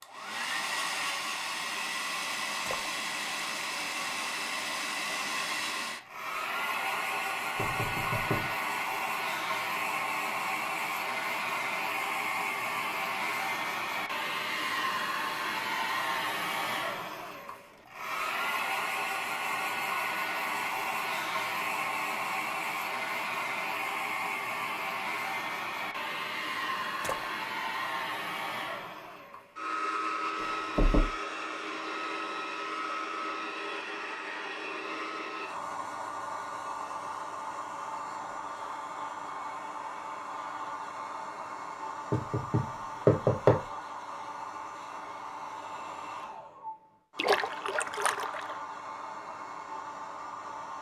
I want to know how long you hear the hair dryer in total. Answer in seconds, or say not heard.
51 s.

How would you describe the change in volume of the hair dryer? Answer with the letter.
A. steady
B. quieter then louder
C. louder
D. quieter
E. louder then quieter
D.